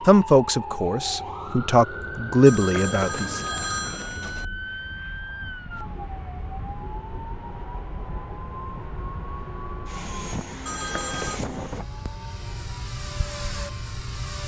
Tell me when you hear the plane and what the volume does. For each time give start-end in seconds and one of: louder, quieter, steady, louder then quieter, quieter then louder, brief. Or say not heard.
4.3-14.4 louder.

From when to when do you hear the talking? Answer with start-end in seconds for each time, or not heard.
0.1-3.4.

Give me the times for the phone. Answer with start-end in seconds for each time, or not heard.
2.5-4.5, 10.7-11.4.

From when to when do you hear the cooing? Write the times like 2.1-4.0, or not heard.
not heard.